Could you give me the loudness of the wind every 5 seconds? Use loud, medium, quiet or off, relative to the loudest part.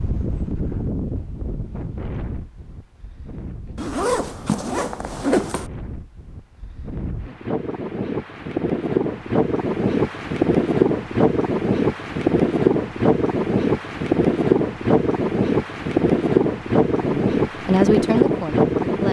quiet, medium, loud, loud.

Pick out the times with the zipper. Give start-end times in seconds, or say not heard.
3.8-5.7.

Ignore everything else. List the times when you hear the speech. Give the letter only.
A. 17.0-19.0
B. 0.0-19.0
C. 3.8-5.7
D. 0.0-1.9
A.